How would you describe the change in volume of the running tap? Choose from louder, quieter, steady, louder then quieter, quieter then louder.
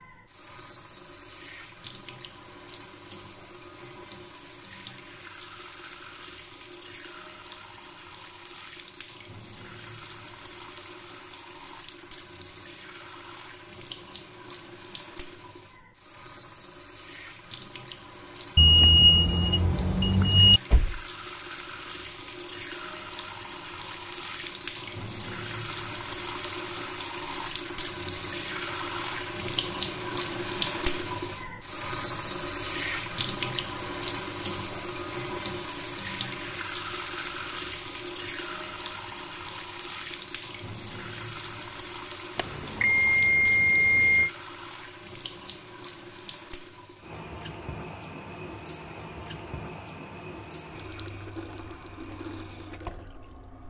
louder then quieter.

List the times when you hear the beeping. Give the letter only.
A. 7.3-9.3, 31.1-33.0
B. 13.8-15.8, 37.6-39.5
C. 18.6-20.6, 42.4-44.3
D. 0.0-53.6
C.